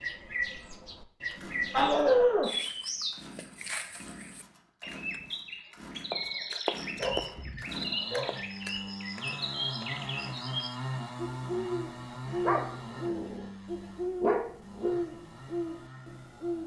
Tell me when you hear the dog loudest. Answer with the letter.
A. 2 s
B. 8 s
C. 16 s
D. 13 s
A.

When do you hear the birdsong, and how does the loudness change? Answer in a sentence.
The birdsong can be heard from 0.0 to 16.6 s, at a steady volume.